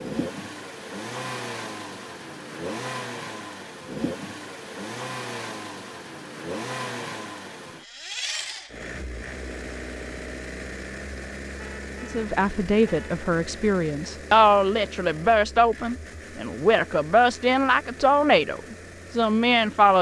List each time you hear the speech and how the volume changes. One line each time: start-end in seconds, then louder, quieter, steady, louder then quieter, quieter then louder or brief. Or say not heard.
12.0-19.9 steady.